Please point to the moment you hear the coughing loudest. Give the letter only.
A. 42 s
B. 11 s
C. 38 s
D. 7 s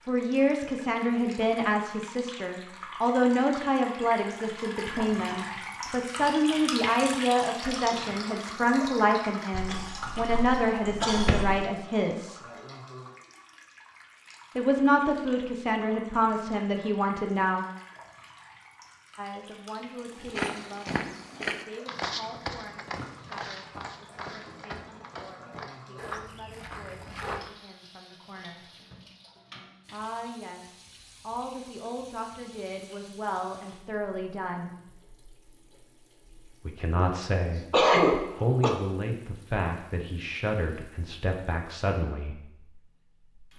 C.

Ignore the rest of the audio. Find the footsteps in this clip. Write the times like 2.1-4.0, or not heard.
20.1-27.5.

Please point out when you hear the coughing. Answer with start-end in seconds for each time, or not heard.
9.5-11.6, 37.1-38.8.